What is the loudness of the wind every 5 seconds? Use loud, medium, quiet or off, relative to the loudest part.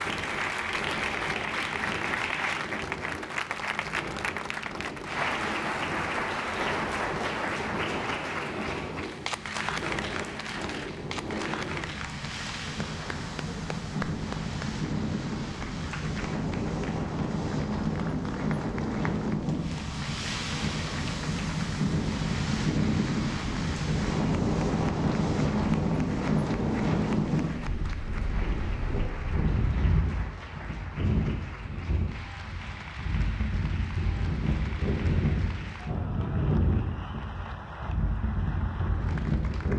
medium, medium, medium, loud, loud, loud, medium, loud.